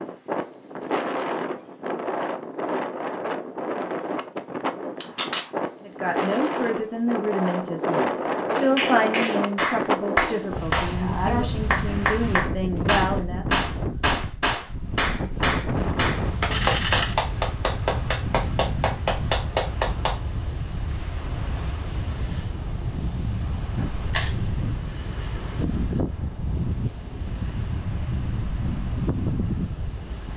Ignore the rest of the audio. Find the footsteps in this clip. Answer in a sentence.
The footsteps can't be heard in this clip.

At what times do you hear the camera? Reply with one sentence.
The camera can be heard from 5.0 to 5.5 s, from 16.5 to 17.1 s and from 23.8 to 24.6 s.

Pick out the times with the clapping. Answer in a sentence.
The clapping can be heard from 8.6 to 20.1 s.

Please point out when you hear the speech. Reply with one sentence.
You can hear the speech from 5.8 to 13.4 s.